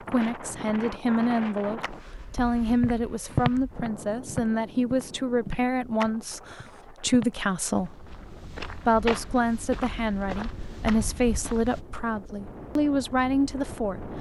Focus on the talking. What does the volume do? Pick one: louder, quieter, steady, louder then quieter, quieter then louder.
steady.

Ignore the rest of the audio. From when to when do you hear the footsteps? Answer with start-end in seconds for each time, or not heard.
2.4-11.8.